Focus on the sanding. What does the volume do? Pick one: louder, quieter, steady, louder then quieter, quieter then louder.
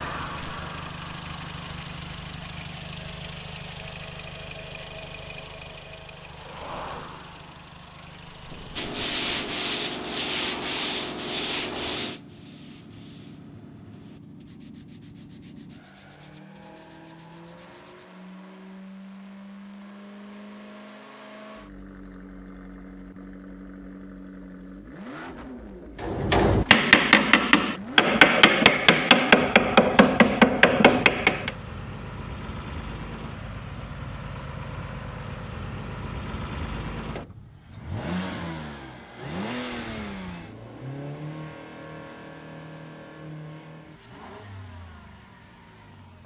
quieter.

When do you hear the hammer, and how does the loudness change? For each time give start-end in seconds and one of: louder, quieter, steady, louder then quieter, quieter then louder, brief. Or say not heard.
26.0-31.5 steady.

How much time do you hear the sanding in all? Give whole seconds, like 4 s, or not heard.
9 s.